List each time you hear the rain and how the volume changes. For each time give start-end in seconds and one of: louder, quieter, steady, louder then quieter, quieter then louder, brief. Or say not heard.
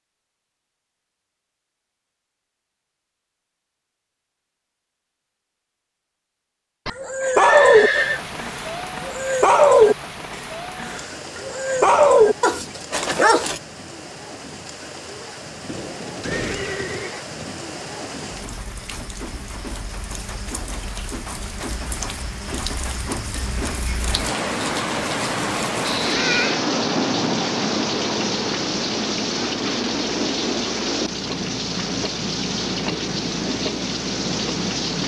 7.7-35.0 louder.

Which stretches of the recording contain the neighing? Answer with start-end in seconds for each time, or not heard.
6.8-8.2, 15.7-17.6, 25.9-26.6.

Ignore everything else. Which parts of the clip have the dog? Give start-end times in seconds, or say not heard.
6.9-13.6.